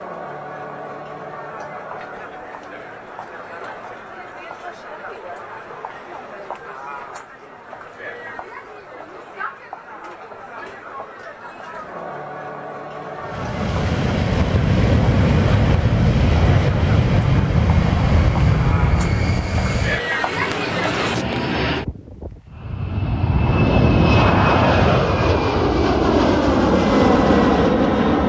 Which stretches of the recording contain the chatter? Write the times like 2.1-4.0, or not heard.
0.0-21.2.